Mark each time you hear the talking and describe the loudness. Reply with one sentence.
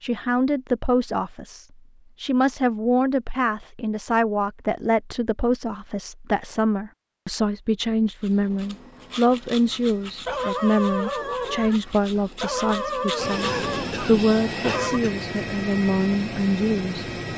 The talking can be heard from 0.0 to 17.1 s, at a steady volume.